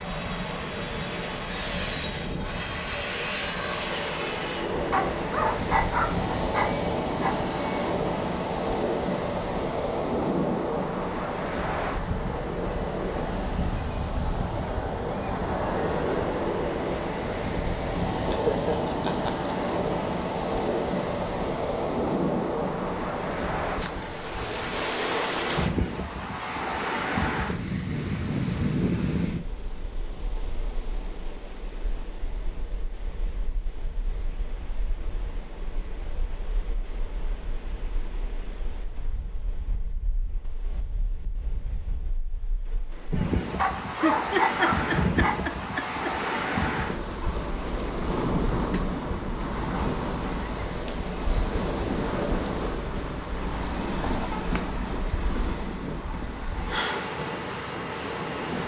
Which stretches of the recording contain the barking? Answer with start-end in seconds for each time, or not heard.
4.9-7.4, 43.5-45.5.